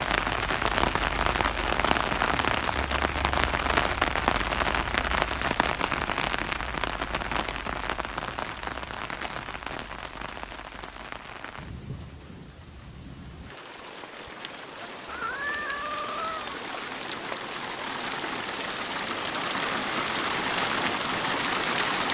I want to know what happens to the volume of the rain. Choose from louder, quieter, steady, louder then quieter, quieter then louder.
quieter then louder.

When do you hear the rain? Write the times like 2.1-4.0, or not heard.
0.0-22.0.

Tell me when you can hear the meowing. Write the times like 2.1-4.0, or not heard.
15.1-16.6.